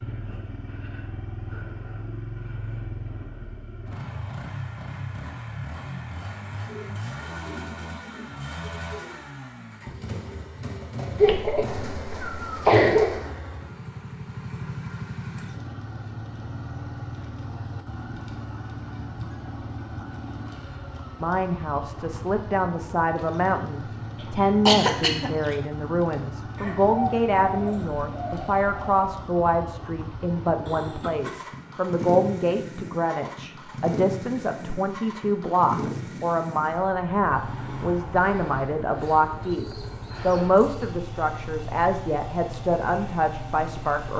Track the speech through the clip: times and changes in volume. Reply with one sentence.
The speech can be heard from 21.2 to 44.1 s, at a steady volume.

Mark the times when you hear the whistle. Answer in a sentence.
The whistle can't be heard in this clip.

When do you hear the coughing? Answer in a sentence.
The coughing can be heard from 11.2 to 13.2 s, from 24.2 to 25.6 s and from 30.6 to 31.4 s.